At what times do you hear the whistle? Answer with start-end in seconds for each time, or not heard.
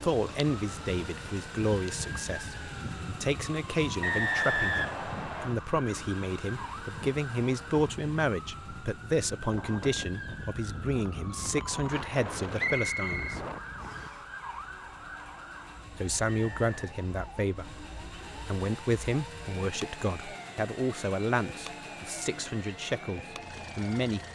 4.0-5.5, 12.6-14.2, 16.2-16.9.